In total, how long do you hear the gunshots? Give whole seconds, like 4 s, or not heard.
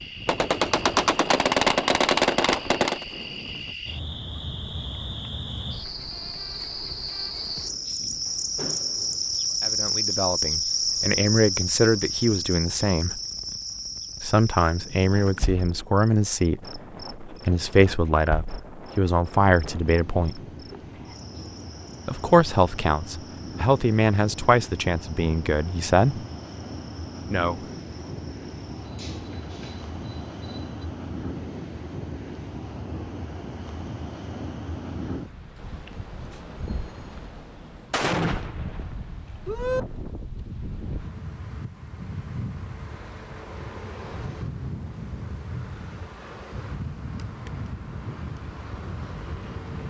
5 s.